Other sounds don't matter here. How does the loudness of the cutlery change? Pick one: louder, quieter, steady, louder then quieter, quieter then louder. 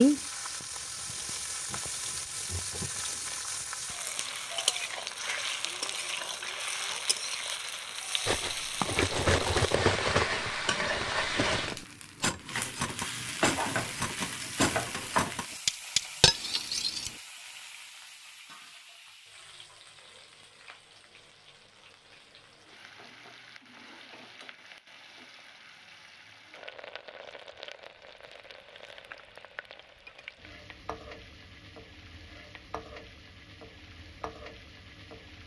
quieter then louder.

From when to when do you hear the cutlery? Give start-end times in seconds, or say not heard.
8.2-17.1.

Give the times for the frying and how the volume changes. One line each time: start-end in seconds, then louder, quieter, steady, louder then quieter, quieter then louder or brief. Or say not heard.
0.0-35.4 quieter.